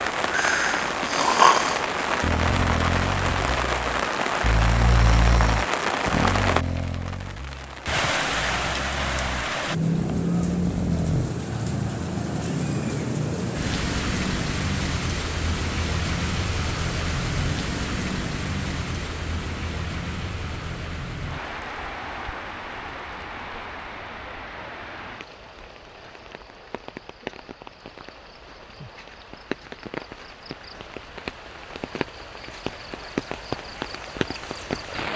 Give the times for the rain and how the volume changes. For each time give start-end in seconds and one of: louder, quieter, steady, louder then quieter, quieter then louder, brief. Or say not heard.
0.0-35.1 quieter.